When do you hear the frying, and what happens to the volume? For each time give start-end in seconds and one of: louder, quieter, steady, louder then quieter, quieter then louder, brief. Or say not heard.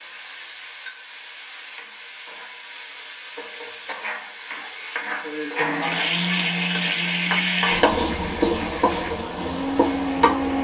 0.0-10.5 louder.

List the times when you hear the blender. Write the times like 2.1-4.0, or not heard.
5.5-10.5.